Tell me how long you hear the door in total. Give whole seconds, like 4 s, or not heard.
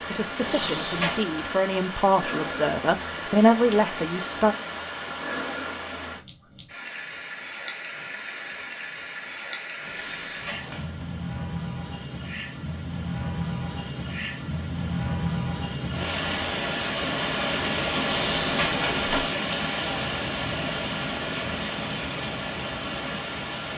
3 s.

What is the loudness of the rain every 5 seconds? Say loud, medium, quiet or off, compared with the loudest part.
medium, medium, medium, loud, loud.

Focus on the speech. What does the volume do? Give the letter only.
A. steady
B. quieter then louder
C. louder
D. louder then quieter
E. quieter
C.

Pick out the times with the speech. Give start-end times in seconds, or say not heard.
0.1-4.5.